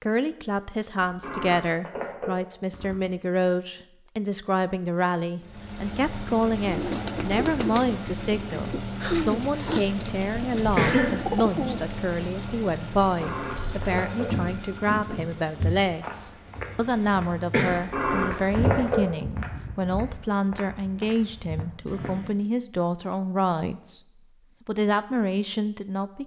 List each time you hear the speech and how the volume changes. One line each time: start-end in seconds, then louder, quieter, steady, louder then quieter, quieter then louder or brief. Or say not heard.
0.0-24.0 steady
24.6-26.2 brief.